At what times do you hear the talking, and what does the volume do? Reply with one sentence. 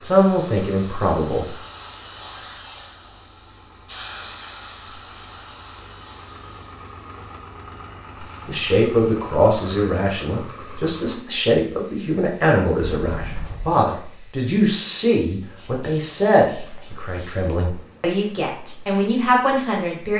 You can hear the talking briefly from 0.0 to 1.4 s; and from 8.4 to 20.1 s, at a steady volume.